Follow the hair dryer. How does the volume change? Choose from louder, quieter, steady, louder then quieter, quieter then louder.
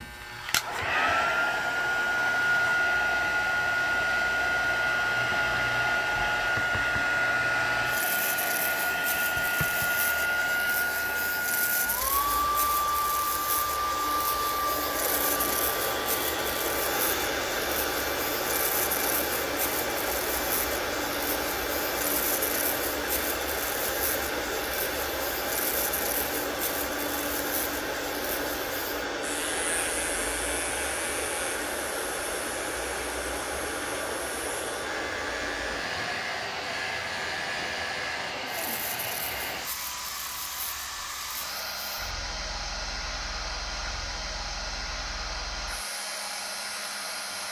quieter.